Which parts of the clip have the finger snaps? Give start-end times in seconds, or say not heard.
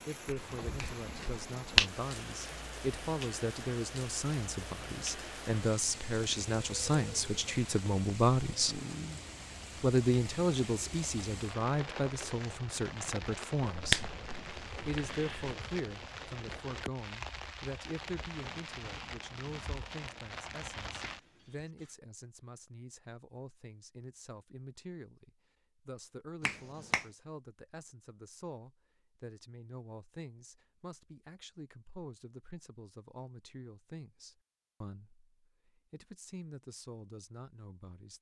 0.2-1.9, 13.8-15.5, 26.4-27.1.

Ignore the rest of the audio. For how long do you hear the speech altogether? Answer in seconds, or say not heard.
36 s.